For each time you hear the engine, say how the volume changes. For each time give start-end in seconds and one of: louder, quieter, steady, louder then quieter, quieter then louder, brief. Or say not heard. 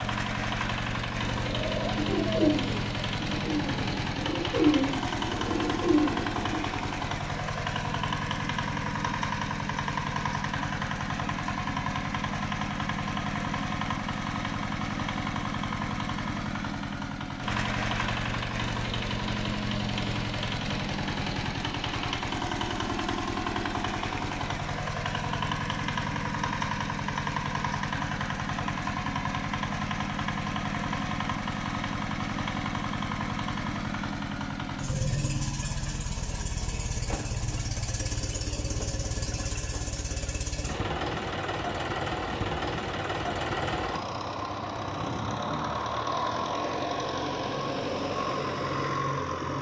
0.0-49.5 steady.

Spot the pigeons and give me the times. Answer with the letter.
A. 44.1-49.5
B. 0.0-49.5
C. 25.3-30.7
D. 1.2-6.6
D.